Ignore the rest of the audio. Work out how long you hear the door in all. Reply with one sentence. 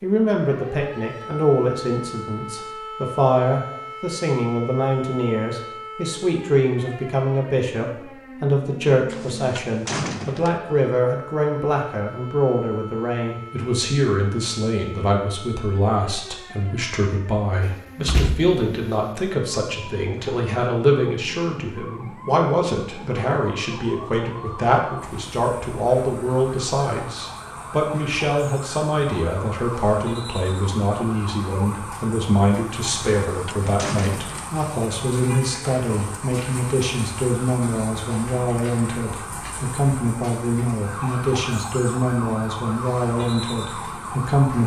You can hear the door for 4 seconds altogether.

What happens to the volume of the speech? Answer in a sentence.
The volume of the speech stays about the same.